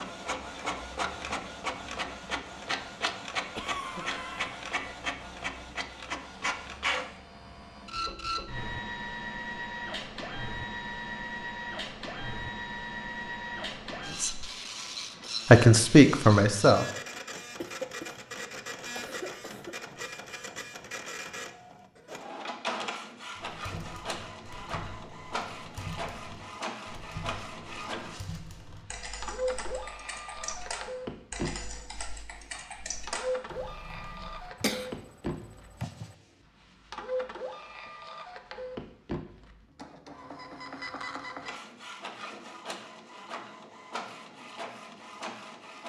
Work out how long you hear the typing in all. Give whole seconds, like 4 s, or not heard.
11 s.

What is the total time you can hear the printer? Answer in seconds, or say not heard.
46 s.